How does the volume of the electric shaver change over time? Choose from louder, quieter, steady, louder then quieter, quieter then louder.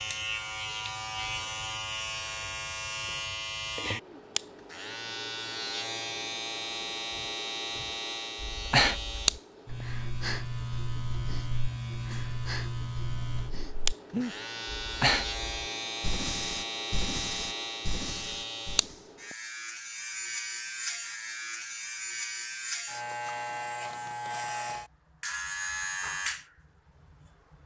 steady.